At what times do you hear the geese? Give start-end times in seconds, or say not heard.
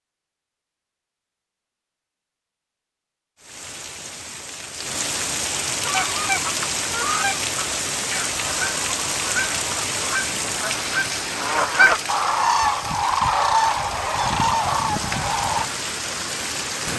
5.8-15.7.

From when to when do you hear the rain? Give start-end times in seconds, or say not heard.
3.4-16.9.